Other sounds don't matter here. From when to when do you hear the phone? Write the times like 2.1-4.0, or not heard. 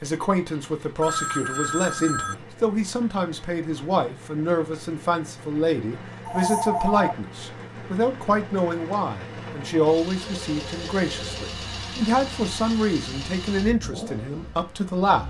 1.0-2.4, 6.2-7.2, 10.2-11.4.